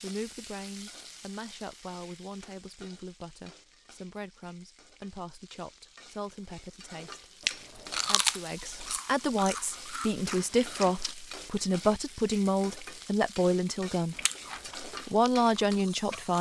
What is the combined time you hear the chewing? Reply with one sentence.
You can hear the chewing for 6 seconds altogether.